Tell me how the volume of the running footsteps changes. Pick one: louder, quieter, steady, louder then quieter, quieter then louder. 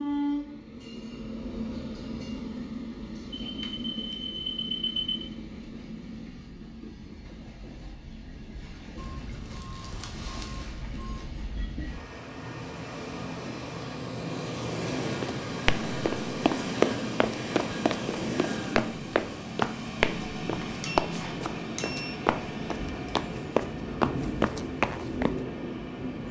quieter then louder.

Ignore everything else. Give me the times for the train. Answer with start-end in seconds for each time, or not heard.
0.0-26.2.